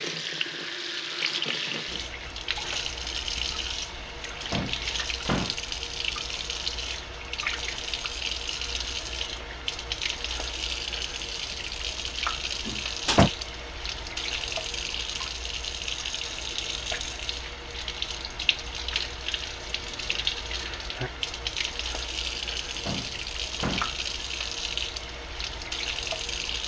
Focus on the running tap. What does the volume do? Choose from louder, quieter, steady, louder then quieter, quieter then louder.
steady.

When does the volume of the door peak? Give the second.
13 s.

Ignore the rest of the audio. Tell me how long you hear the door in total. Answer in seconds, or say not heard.
3 s.